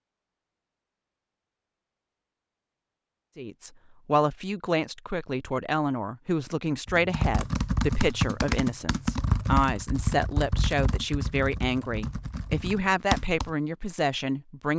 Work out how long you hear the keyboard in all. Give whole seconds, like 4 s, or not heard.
7 s.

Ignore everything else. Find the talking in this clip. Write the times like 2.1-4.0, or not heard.
3.4-14.7.